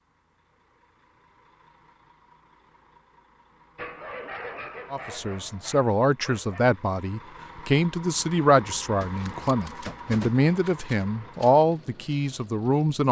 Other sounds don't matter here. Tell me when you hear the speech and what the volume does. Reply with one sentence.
You can hear the speech from 4.9 to 13.0 s, at a steady volume.